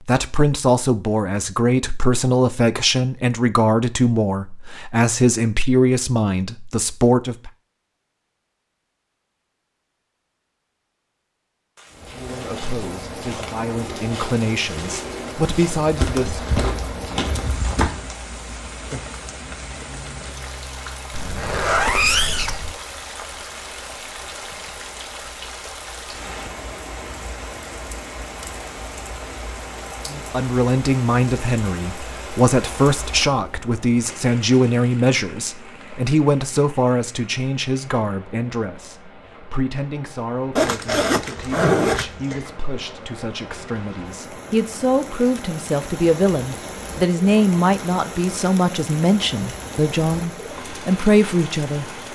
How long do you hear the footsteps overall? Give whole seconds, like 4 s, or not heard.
6 s.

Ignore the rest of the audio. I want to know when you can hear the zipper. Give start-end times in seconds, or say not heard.
21.1-22.8, 40.5-42.5.